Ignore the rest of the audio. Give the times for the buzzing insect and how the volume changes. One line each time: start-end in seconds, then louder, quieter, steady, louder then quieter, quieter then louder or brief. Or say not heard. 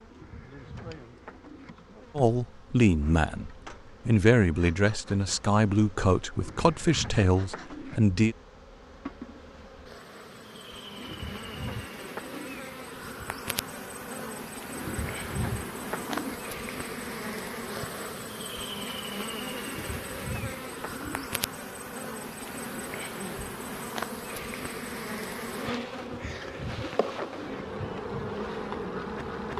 0.0-29.5 louder.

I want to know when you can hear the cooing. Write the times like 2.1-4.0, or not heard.
0.1-1.7, 6.3-8.0, 10.9-12.6, 14.8-16.4, 19.6-21.3, 26.0-27.6.